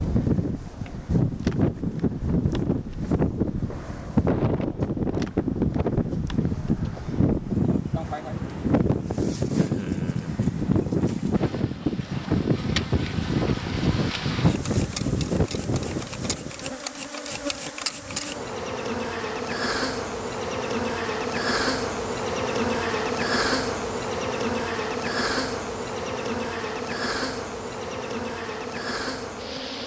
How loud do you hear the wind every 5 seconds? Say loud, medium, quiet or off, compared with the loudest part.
loud, loud, loud, loud, off, off.